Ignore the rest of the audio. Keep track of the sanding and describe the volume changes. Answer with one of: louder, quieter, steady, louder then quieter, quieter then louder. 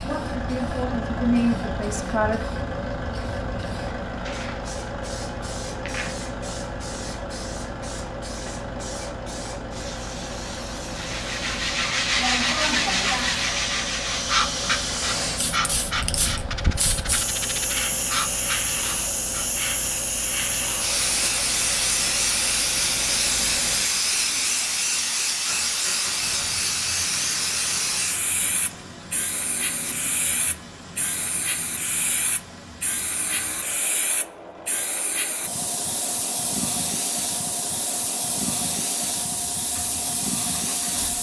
quieter.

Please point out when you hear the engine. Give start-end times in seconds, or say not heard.
0.0-41.1.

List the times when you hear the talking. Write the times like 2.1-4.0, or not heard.
0.0-2.5.